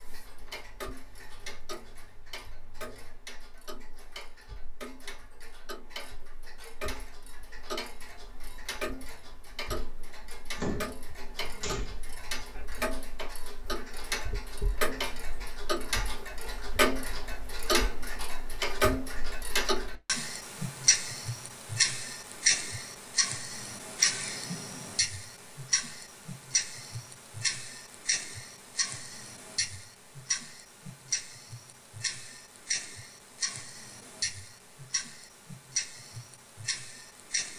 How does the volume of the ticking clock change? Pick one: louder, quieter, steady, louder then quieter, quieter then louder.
louder then quieter.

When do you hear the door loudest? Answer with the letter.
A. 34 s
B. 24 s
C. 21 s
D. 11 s
D.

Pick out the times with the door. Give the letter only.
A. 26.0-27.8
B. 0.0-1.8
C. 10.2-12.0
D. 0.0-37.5
C.